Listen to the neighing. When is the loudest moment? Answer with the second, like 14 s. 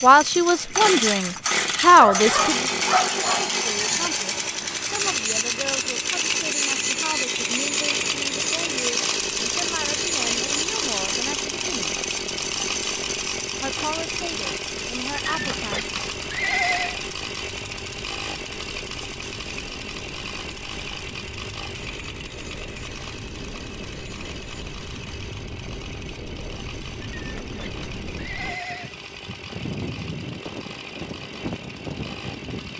17 s.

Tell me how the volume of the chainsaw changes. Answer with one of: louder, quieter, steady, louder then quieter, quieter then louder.
quieter.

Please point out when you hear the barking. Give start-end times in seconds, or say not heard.
1.9-3.5.